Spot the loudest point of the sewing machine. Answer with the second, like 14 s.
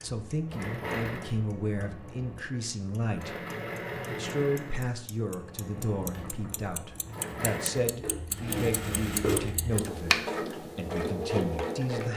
9 s.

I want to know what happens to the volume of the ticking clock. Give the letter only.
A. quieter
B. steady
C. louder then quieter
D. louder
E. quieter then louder
C.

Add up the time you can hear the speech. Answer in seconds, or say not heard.
11 s.